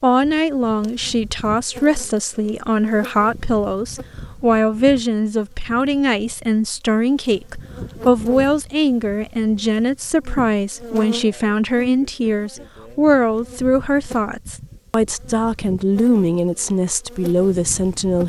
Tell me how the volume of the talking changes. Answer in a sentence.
The loudness of the talking stays about the same.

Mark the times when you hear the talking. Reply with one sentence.
The talking can be heard from 0.0 to 18.2 s.